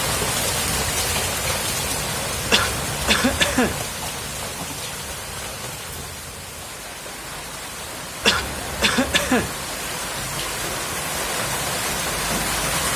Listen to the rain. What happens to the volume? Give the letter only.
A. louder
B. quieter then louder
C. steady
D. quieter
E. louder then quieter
B.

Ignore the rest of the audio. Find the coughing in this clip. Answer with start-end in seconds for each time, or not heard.
2.5-3.8, 8.2-9.6.